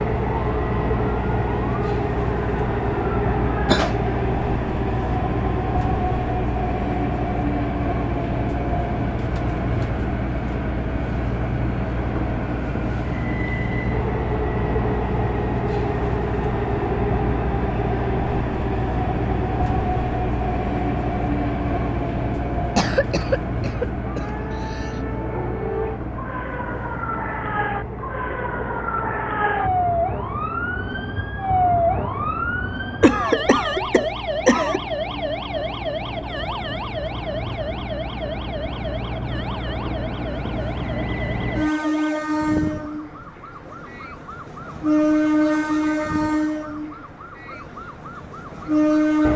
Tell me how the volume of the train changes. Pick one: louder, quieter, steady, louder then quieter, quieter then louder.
quieter then louder.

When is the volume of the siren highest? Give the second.
32 s.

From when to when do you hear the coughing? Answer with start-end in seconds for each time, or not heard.
3.6-4.1, 22.8-25.0, 33.0-34.8.